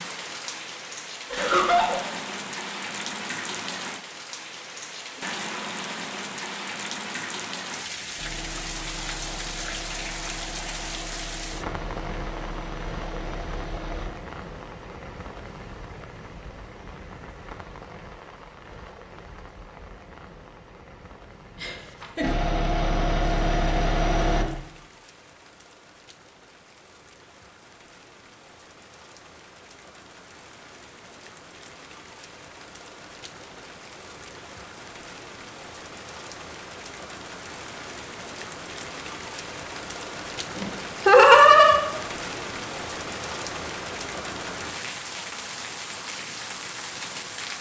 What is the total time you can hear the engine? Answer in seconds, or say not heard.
8 s.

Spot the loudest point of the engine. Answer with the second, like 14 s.
24 s.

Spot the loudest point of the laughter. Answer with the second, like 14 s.
41 s.